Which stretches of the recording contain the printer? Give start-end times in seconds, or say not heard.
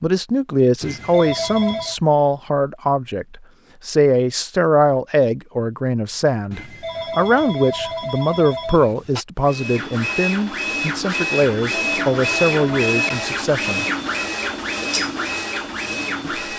9.4-16.5.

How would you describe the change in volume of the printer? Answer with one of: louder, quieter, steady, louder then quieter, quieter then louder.
steady.